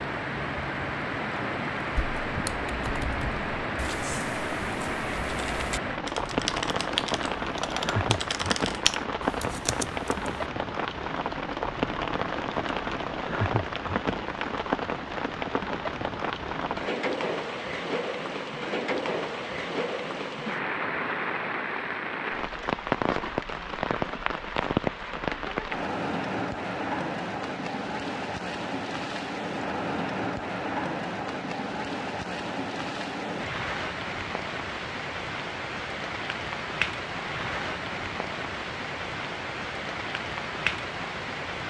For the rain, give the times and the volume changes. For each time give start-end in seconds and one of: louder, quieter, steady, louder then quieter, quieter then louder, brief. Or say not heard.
0.0-41.6 steady.